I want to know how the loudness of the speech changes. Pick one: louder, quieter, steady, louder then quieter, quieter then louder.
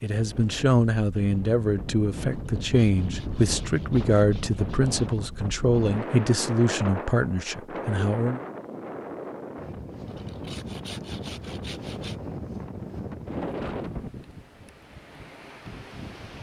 steady.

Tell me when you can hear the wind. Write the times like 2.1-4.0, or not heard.
0.1-16.3.